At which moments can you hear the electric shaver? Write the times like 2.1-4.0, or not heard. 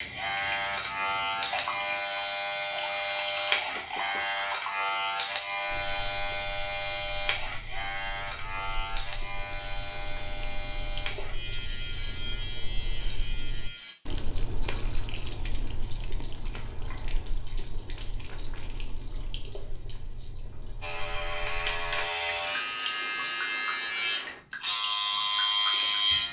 0.0-13.9, 20.8-26.2.